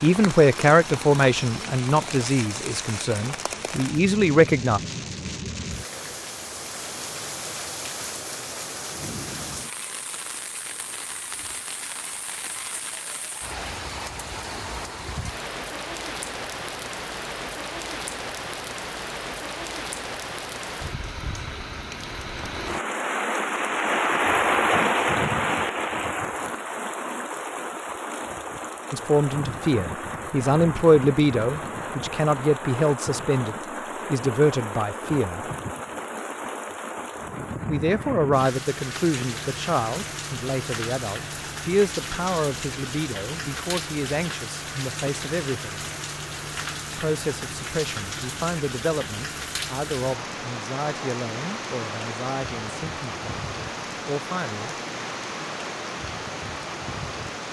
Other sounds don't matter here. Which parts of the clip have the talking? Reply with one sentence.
The talking can be heard from 0.0 to 4.8 s, from 28.9 to 35.5 s, from 37.6 to 45.8 s and from 47.0 to 54.8 s.